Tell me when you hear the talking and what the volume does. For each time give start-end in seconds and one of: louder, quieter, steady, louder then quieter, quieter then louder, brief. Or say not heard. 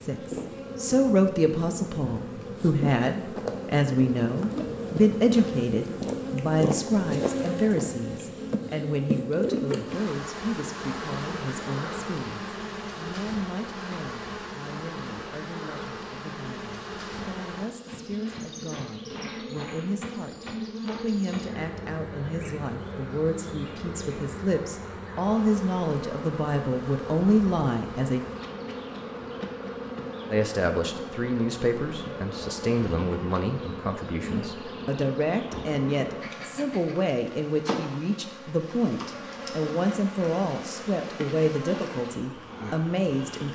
0.0-28.2 quieter then louder
30.3-43.5 steady.